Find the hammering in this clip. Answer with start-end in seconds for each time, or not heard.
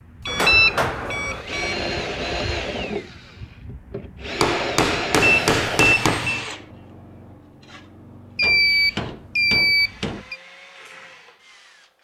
0.2-1.4, 4.4-6.3, 8.4-10.2.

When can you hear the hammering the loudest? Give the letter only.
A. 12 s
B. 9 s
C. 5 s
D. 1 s
C.